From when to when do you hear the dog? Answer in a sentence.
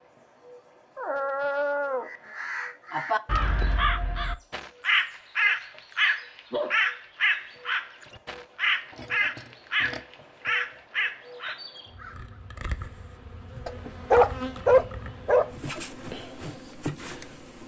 The dog can be heard from 0.9 to 2.1 s, from 5.6 to 6.8 s, from 8.9 to 10.5 s and from 13.7 to 15.5 s.